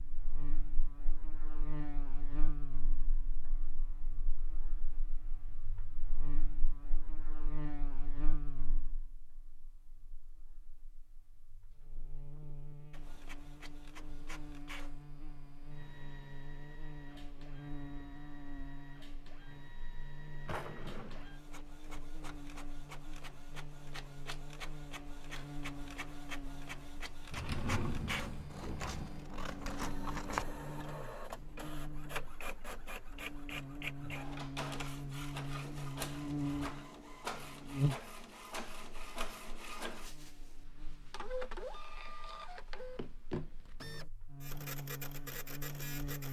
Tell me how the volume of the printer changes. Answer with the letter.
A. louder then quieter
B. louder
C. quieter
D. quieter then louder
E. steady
B.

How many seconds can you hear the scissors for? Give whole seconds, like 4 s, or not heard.
2 s.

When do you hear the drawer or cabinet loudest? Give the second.
28 s.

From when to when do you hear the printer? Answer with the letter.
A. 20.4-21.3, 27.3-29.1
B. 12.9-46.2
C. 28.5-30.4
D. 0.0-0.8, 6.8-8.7
B.